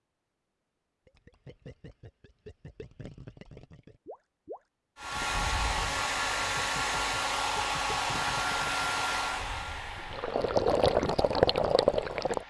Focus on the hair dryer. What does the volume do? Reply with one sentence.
The loudness of the hair dryer goes down.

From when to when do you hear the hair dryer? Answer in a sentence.
The hair dryer can be heard from 5.0 to 12.4 s.